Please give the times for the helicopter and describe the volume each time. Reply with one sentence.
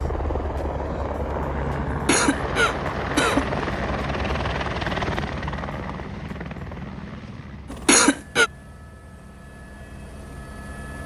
You can hear the helicopter from 0.0 to 11.0 s, getting quieter.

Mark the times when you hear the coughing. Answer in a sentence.
The coughing can be heard from 1.9 to 3.5 s and from 7.7 to 8.5 s.